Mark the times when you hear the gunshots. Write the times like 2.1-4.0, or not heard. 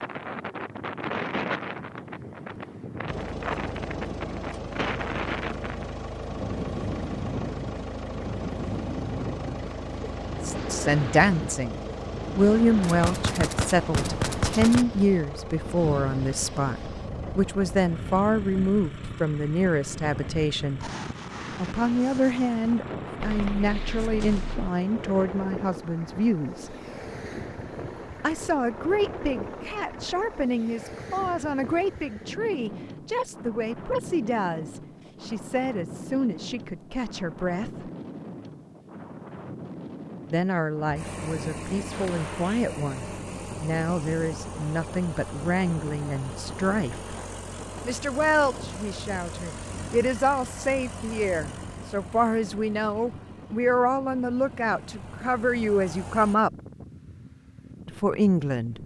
12.8-14.8, 23.2-24.7, 41.9-42.6.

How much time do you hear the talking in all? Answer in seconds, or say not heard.
42 s.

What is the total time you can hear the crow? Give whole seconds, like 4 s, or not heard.
not heard.